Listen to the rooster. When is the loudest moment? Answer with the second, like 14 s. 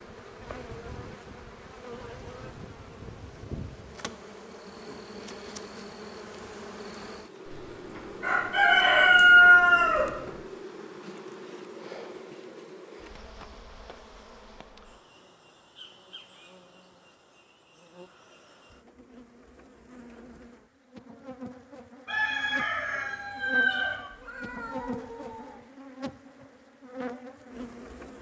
9 s.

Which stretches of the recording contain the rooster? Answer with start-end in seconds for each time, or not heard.
7.5-10.3, 22.1-23.9.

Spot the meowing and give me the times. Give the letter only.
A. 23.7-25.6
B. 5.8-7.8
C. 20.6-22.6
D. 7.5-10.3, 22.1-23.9
A.